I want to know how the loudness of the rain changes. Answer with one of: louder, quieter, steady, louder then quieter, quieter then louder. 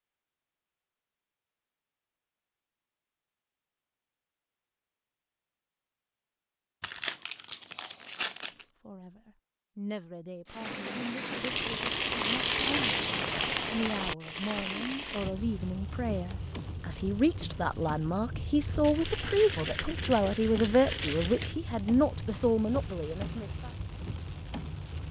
quieter.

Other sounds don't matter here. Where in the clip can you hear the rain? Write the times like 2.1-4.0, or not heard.
10.4-25.0.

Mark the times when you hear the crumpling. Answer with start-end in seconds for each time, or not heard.
6.8-8.7, 18.8-21.6.